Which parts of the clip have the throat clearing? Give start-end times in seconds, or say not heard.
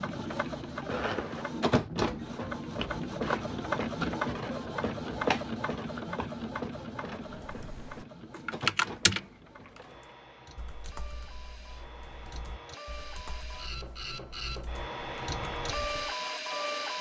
not heard.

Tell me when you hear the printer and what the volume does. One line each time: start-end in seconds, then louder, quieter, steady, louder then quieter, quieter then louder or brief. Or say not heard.
0.0-16.9 quieter then louder.